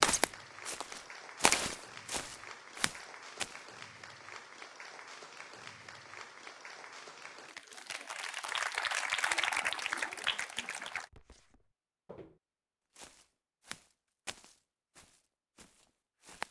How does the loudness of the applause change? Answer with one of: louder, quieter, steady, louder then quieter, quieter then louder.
louder.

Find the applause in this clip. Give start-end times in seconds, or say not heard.
0.1-11.1.